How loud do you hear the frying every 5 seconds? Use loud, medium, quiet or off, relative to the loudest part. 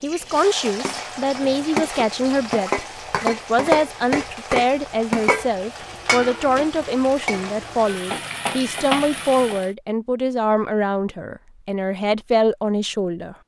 loud, loud, off.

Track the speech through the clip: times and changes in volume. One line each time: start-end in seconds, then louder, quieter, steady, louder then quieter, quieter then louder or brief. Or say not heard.
0.0-13.3 steady.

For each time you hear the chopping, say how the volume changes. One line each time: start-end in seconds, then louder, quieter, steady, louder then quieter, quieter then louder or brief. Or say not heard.
not heard.